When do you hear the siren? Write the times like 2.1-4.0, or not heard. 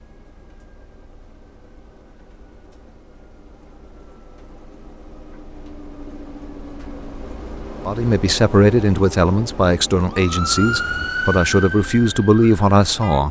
10.1-13.2.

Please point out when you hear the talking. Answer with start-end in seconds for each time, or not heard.
7.8-13.2.